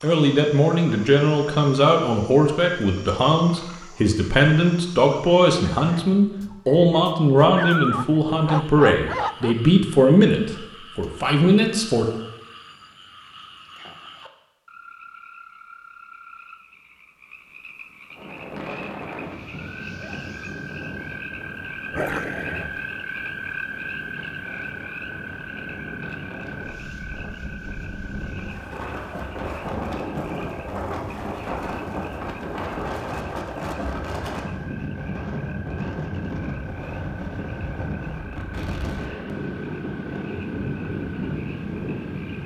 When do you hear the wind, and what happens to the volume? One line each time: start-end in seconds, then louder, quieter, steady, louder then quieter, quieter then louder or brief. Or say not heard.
18.1-42.4 louder.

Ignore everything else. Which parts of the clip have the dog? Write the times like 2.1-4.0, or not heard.
7.5-9.6, 21.9-22.8.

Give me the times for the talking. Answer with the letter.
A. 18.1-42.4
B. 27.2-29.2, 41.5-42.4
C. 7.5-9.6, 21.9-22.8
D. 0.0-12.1
D.